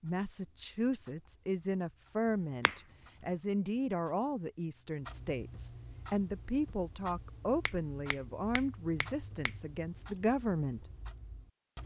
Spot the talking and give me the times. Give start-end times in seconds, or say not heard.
0.0-10.8.